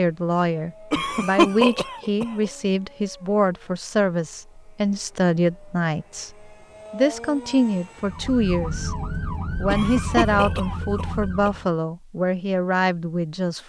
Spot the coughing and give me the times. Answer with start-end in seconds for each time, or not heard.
0.9-2.5, 9.7-11.5.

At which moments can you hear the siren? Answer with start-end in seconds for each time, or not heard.
8.0-11.7.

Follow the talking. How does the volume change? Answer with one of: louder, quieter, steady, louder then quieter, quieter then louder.
steady.